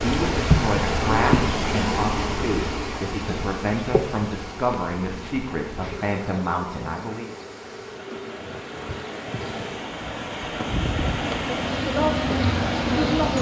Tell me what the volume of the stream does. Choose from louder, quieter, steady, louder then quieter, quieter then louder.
quieter then louder.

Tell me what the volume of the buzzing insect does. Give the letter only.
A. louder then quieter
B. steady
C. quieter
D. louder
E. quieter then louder
E.